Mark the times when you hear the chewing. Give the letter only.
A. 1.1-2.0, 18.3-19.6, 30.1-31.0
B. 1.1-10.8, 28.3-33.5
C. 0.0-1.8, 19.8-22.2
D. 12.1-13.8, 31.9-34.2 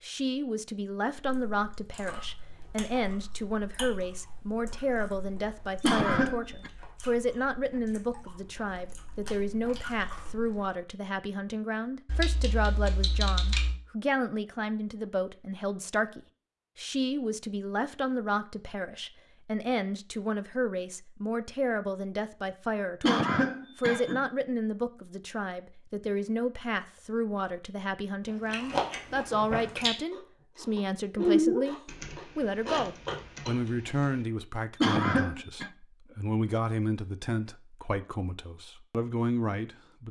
B.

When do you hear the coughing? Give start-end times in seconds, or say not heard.
5.8-6.7, 23.0-24.2, 34.8-35.7.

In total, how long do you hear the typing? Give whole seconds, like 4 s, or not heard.
4 s.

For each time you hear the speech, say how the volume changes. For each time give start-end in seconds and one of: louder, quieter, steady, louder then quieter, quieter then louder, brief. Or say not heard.
0.0-40.0 steady.